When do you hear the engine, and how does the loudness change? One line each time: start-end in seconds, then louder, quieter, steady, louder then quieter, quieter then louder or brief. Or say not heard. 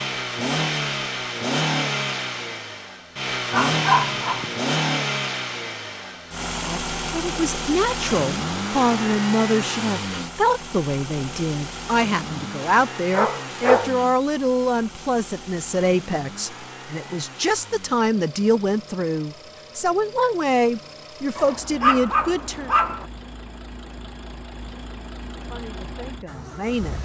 0.0-27.0 quieter.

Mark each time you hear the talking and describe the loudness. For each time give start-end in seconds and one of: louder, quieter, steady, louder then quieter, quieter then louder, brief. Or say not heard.
6.7-22.7 steady
25.4-27.0 brief.